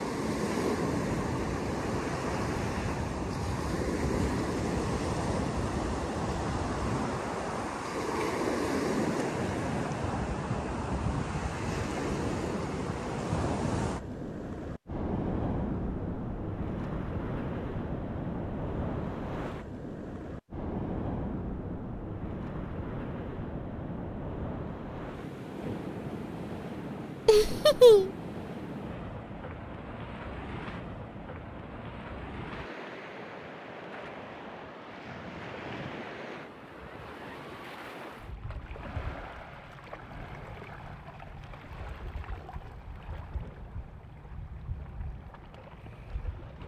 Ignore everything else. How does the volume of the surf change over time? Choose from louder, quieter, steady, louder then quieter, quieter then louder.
quieter.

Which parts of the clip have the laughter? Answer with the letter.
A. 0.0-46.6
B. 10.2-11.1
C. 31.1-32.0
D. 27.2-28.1
D.